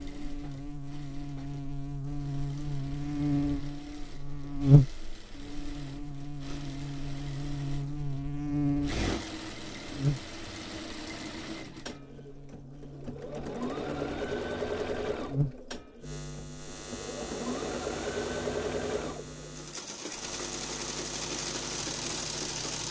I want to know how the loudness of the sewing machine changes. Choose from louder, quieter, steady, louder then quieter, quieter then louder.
louder.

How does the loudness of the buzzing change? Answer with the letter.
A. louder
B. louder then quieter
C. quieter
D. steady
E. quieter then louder
C.